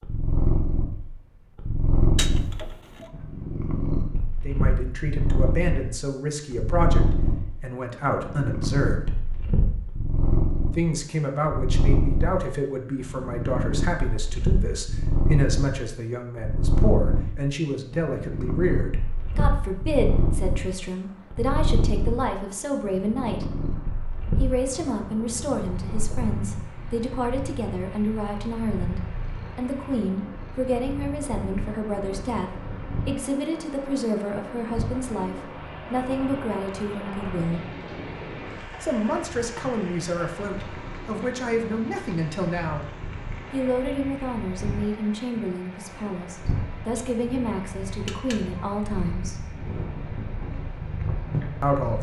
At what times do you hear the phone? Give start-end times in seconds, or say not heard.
2.1-3.1, 47.9-48.7.